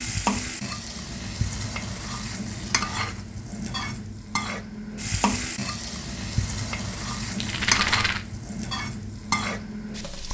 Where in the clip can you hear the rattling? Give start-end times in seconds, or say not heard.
7.3-8.2.